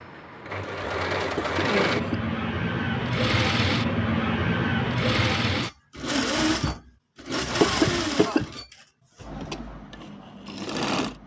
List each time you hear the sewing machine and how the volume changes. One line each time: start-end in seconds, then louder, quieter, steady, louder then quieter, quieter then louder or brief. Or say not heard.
0.0-11.2 quieter.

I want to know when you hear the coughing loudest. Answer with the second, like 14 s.
8 s.